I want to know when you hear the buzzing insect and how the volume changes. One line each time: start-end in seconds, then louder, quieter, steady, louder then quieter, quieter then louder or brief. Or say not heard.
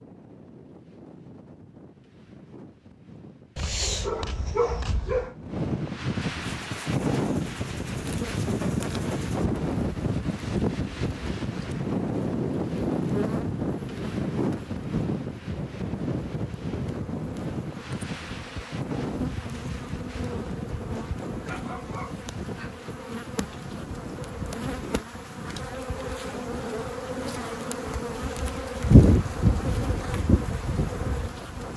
6.4-31.7 louder.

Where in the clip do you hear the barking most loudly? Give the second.
5 s.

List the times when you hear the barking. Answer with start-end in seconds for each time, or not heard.
3.5-5.3, 21.4-22.8.